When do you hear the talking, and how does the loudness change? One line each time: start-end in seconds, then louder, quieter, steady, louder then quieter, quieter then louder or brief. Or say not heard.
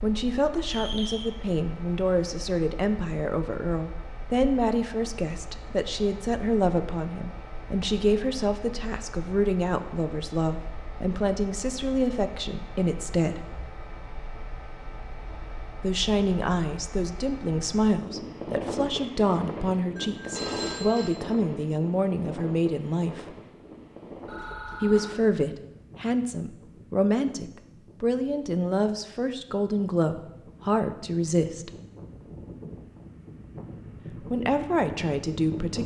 0.0-13.5 steady
15.8-23.4 steady
24.8-31.7 steady
34.2-35.8 brief.